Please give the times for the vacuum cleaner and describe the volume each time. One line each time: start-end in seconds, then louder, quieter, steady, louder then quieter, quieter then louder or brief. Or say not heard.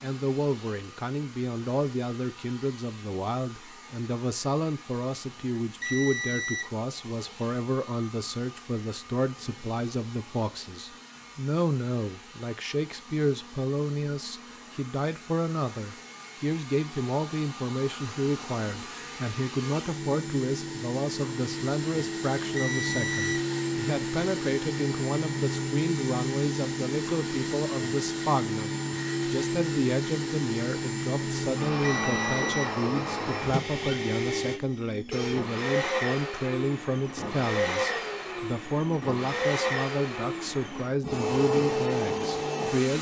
0.0-42.9 louder.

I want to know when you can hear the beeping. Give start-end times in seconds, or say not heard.
5.8-6.7, 22.6-23.4, 31.8-32.7.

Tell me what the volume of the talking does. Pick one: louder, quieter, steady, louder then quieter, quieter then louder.
steady.